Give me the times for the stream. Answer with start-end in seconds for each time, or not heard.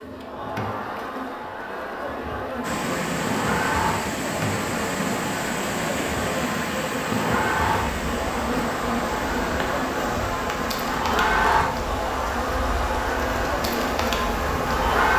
2.6-15.1.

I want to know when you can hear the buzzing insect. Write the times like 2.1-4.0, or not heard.
0.0-15.1.